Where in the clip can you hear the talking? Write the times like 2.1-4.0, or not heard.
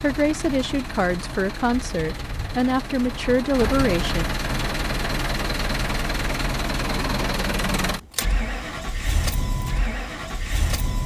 0.0-4.2.